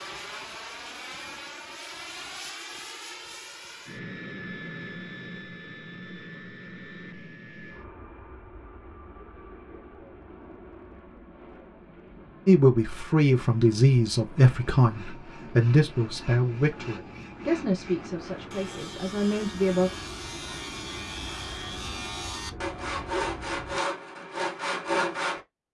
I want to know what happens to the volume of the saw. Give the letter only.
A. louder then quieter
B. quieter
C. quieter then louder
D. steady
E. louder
E.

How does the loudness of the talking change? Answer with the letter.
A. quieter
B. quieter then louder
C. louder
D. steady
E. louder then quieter
A.